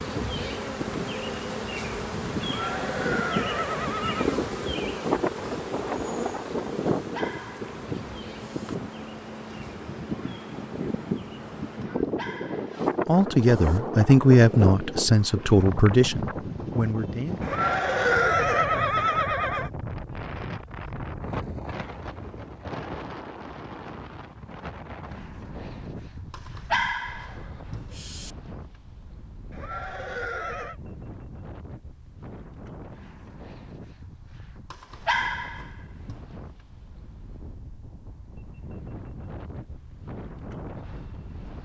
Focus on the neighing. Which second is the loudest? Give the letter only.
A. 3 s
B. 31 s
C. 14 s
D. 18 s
D.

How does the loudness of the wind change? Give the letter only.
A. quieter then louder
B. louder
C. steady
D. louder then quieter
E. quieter
E.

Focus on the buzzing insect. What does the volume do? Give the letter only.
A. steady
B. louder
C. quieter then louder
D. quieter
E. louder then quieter
D.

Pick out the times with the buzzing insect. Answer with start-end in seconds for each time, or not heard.
0.0-11.9.